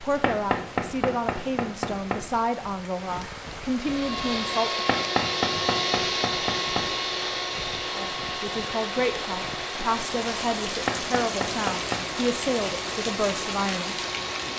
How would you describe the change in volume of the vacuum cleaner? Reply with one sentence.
The volume of the vacuum cleaner goes down.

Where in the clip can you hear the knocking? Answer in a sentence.
You can hear the knocking from 0.2 to 2.2 s, from 4.8 to 6.9 s and from 10.8 to 12.2 s.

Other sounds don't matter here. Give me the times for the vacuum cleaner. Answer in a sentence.
You can hear the vacuum cleaner from 3.8 to 14.5 s.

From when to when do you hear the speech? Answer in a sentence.
You can hear the speech from 0.0 to 4.8 s and from 7.9 to 13.9 s.